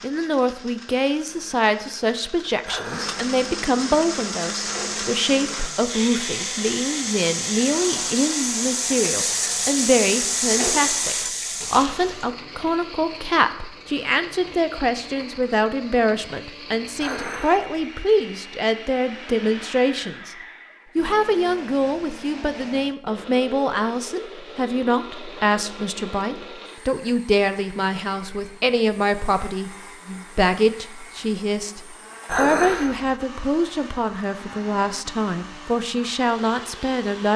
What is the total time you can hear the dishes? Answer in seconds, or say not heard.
2 s.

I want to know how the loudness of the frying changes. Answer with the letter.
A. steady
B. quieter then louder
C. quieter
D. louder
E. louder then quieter
D.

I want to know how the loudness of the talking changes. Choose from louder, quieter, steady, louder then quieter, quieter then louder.
steady.